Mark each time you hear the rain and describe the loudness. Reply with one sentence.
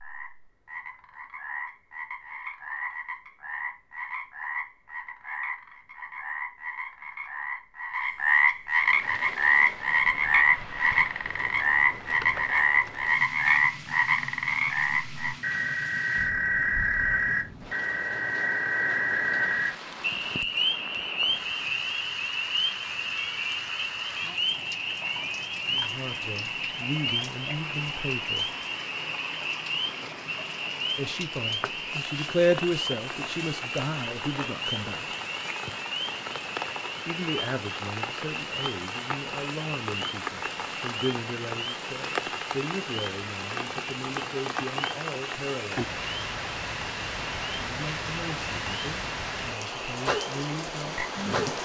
You can hear the rain from 8.8 to 51.6 s, getting louder.